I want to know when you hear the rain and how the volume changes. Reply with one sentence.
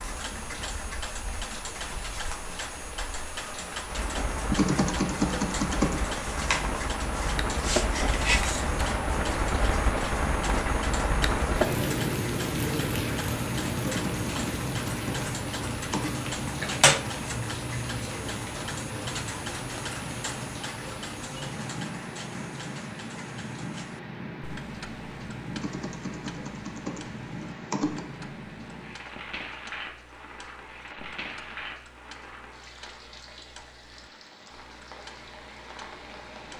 The rain can be heard from 0.0 to 36.5 s, getting louder then quieter.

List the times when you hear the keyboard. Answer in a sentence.
The keyboard can be heard from 4.5 to 6.0 s, from 13.8 to 16.1 s and from 25.6 to 28.1 s.